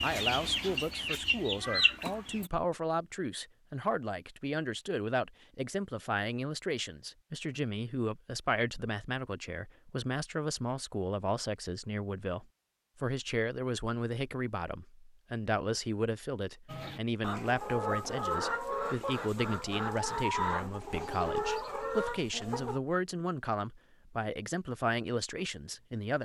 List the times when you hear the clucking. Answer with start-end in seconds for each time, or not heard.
0.0-2.5, 16.6-22.8.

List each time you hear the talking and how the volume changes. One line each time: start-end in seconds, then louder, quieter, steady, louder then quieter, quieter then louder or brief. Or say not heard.
0.0-26.2 steady.